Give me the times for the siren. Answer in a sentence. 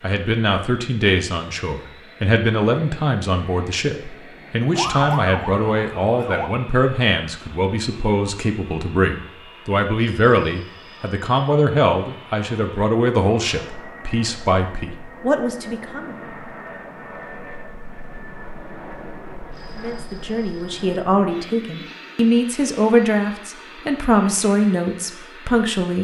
You can hear the siren from 4.7 to 6.5 s.